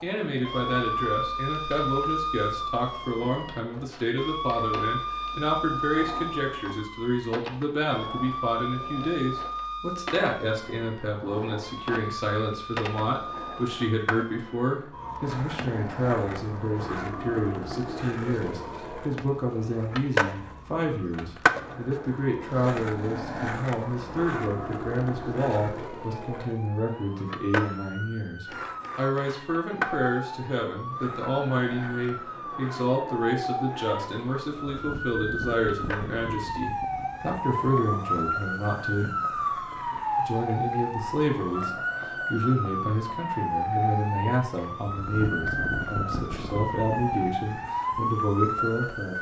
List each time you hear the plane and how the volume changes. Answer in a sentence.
The plane can't be heard in this clip.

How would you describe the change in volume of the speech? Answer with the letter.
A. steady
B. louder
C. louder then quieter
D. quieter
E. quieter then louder
A.